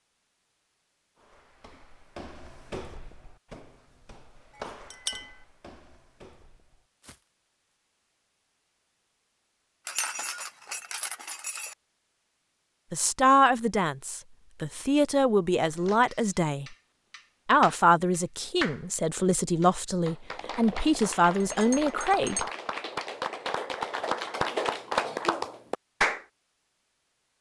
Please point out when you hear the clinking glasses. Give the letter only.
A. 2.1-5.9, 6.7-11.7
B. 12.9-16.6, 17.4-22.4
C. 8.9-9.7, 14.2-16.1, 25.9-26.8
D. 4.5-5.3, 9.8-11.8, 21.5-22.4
D.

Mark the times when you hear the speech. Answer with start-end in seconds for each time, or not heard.
12.9-16.6, 17.4-22.4.